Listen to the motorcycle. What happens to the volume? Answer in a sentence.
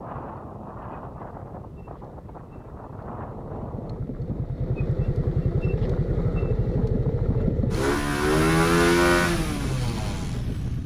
The volume of the motorcycle goes up.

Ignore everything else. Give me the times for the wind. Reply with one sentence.
The wind can be heard from 0.0 to 10.8 s.